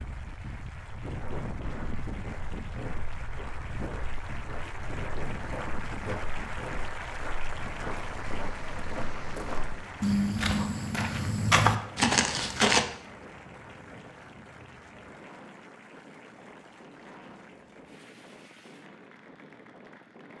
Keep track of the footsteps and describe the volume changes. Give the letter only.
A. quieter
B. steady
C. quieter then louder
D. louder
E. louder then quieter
D.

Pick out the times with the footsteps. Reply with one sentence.
The footsteps can be heard from 1.1 to 12.8 s.